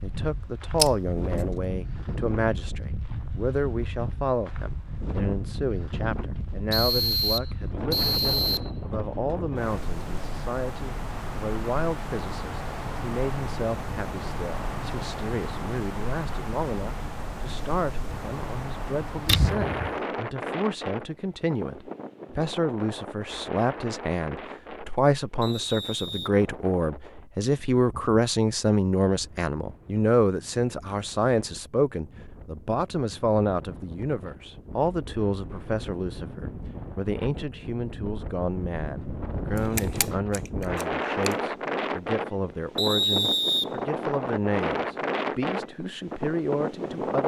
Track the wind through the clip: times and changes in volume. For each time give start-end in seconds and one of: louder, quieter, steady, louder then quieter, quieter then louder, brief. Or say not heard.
0.0-47.2 quieter then louder.